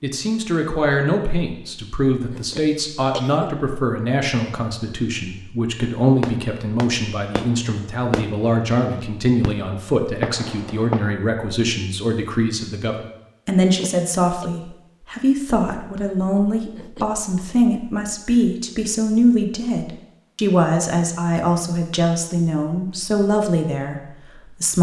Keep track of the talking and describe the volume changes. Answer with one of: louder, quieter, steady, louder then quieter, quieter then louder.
steady.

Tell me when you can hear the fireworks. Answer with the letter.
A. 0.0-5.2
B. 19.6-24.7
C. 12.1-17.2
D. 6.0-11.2
D.